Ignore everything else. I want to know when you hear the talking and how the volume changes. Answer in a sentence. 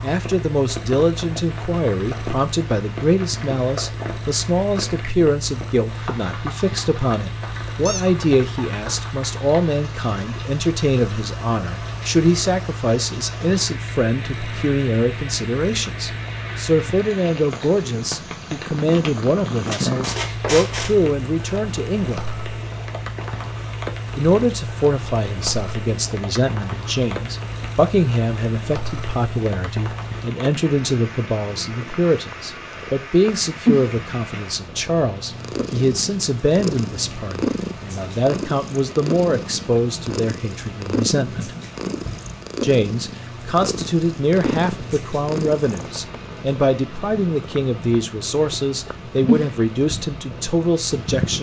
The talking can be heard from 0.0 to 22.3 s, at a steady volume; from 24.1 to 41.5 s, at a steady volume; and from 42.6 to 51.3 s, at a steady volume.